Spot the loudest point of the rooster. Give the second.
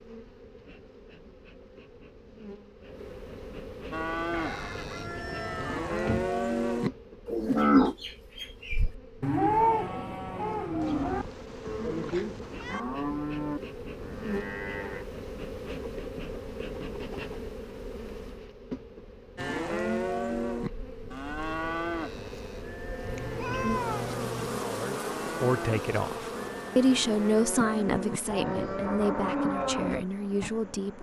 6 s.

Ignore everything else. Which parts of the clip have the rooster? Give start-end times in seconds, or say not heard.
4.3-6.3.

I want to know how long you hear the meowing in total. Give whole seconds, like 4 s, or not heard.
4 s.